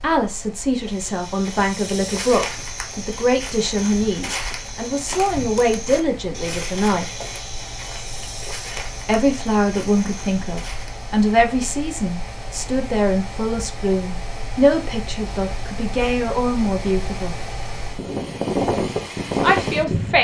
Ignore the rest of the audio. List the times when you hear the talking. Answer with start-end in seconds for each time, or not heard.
0.0-7.0, 9.1-17.4, 19.4-20.1.